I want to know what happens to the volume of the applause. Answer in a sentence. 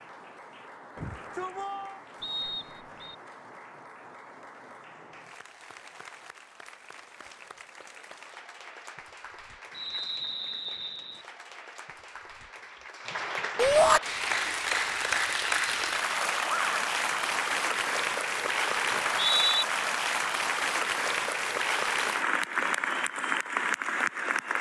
The volume of the applause goes up.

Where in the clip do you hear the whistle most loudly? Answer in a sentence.
The volume of the whistle peaks at 19 seconds.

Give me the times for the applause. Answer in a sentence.
You can hear the applause from 0.0 to 24.5 s.